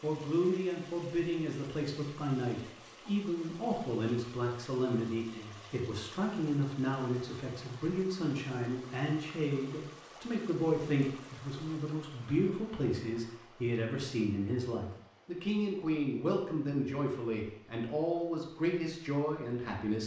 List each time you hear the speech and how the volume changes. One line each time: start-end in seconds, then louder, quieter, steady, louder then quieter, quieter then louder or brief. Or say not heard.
0.0-20.0 steady.